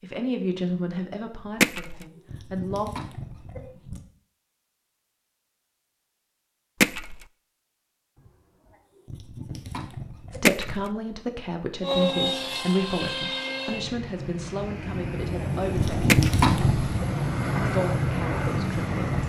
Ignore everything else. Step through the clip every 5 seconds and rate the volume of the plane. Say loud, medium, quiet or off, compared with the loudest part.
off, off, loud, loud.